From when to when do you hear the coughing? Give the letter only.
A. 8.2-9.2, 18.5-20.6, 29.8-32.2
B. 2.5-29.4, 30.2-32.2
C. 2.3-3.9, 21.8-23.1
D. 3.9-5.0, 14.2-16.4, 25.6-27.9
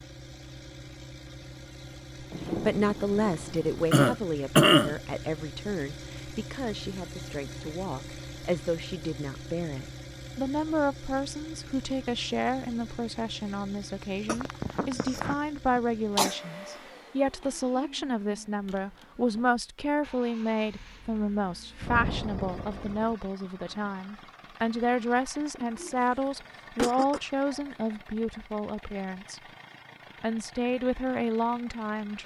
D.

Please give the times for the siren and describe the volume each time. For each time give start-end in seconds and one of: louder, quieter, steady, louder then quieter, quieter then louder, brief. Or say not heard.
not heard.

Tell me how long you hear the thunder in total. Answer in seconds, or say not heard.
3 s.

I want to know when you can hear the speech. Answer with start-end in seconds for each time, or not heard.
2.5-29.4, 30.2-32.2.